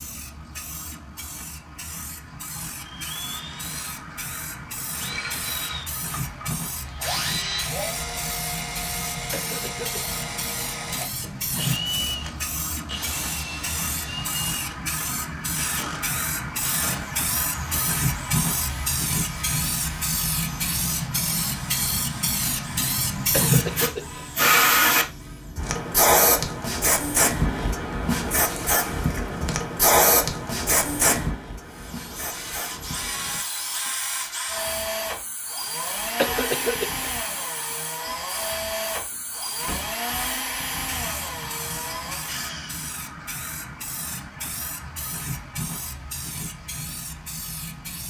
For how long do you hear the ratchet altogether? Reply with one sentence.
You can't hear the ratchet here.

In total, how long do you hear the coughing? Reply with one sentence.
The coughing can be heard for 3 seconds in total.